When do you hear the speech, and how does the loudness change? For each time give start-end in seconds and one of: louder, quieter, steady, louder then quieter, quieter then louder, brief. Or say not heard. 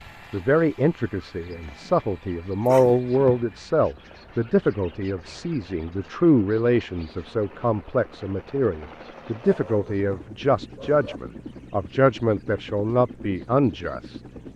0.3-14.5 steady.